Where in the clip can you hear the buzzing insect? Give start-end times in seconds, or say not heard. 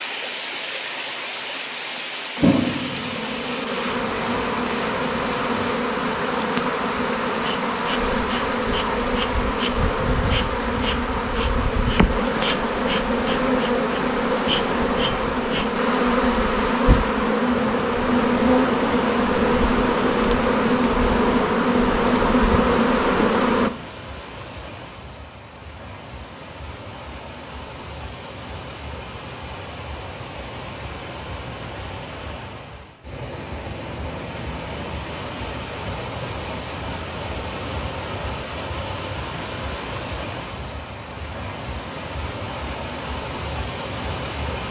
2.4-23.7.